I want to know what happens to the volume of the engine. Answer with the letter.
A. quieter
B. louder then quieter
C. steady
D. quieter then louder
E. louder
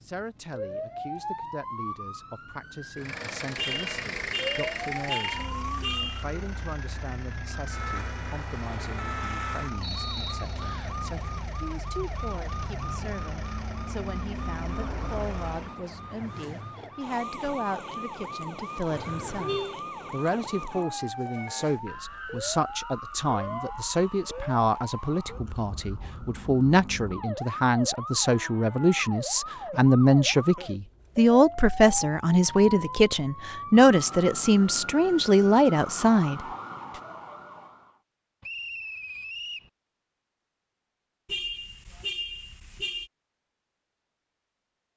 A.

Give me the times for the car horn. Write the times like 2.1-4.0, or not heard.
3.5-6.2, 18.9-19.8, 41.2-43.1.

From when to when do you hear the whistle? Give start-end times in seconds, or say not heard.
9.8-10.9, 38.4-39.7.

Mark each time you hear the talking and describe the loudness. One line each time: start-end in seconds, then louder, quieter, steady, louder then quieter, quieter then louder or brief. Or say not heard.
0.0-36.4 louder.